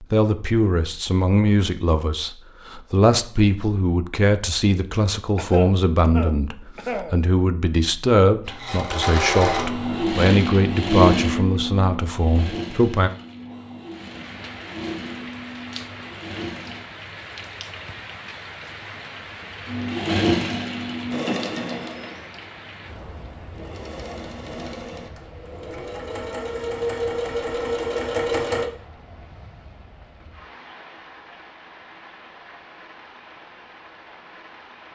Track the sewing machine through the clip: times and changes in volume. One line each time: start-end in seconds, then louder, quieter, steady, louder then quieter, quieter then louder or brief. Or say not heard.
8.4-16.9 quieter
19.6-28.7 quieter then louder.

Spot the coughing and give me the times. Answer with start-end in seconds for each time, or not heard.
5.3-7.2.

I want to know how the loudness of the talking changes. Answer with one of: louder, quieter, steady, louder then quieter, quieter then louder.
steady.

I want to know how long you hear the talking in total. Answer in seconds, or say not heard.
13 s.